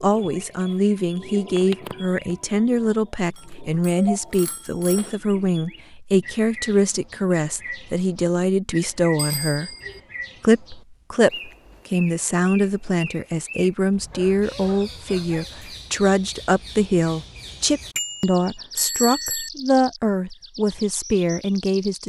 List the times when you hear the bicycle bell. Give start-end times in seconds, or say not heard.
3.4-5.1, 9.2-10.0, 17.9-19.5.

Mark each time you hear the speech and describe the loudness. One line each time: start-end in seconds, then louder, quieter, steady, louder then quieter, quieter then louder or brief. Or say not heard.
0.0-9.8 steady
10.4-22.0 steady.